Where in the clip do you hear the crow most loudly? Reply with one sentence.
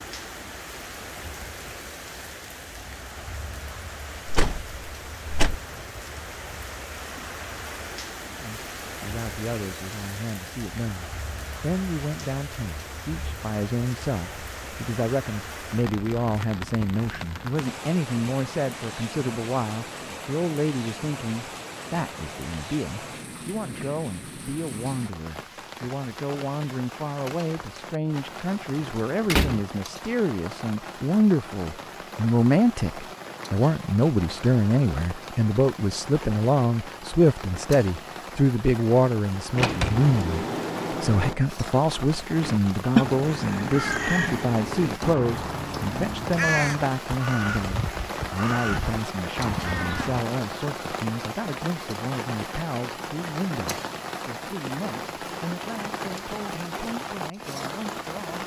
The loudest moment of the crow is at 43 seconds.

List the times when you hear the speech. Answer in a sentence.
The speech can be heard from 8.4 to 58.4 s.